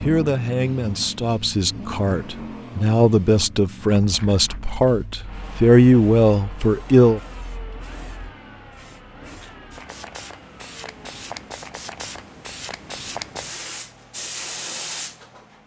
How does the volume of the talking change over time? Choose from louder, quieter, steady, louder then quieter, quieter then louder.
louder.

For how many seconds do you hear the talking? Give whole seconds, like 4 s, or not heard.
7 s.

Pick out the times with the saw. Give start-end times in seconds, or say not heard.
not heard.